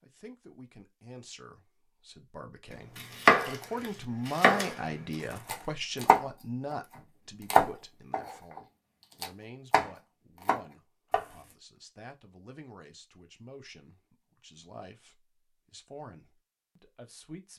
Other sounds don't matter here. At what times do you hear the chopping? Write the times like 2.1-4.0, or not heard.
3.0-4.8, 5.5-6.8, 7.5-8.6, 9.2-11.2.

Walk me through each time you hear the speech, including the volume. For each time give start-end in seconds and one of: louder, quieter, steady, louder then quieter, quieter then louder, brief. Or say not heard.
0.0-17.5 louder then quieter.